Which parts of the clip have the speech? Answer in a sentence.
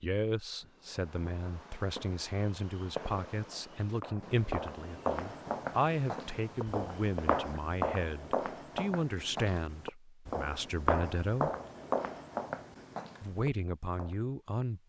You can hear the speech from 0.0 to 11.5 s and from 13.2 to 14.8 s.